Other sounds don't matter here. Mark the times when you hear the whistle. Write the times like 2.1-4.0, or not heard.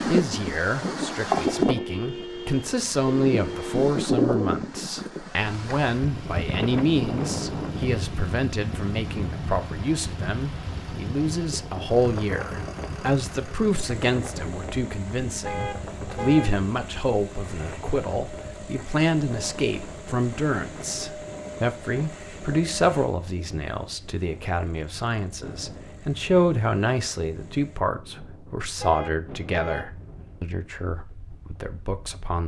not heard.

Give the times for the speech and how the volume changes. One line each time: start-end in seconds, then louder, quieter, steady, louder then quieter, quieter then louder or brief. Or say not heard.
0.1-32.4 steady.